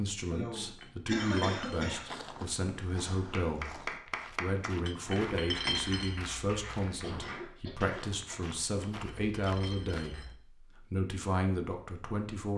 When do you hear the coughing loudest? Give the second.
1 s.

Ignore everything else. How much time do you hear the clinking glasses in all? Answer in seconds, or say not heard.
4 s.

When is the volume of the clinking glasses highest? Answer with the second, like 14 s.
6 s.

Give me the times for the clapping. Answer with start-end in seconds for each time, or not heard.
3.1-8.3.